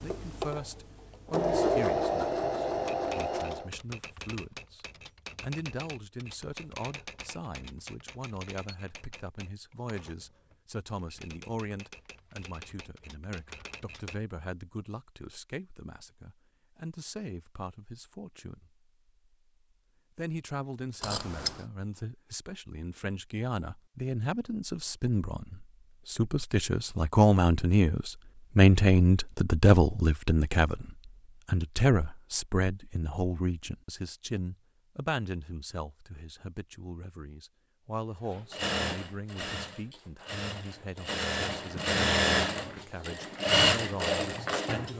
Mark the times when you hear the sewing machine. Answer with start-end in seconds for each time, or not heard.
0.0-3.7, 38.3-44.9.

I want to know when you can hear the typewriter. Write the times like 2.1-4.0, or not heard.
2.6-14.2.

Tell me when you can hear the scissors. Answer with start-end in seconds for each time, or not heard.
21.0-21.6.